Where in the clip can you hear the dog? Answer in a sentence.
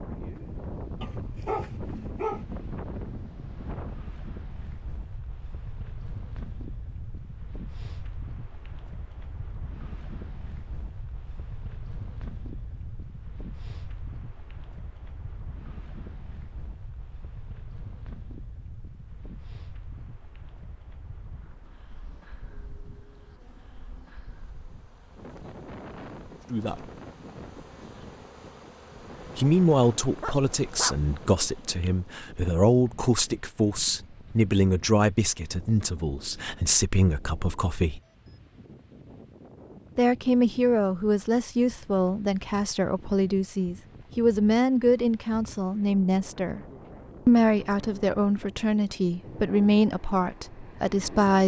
The dog can be heard from 1.0 to 2.6 s and from 30.2 to 31.0 s.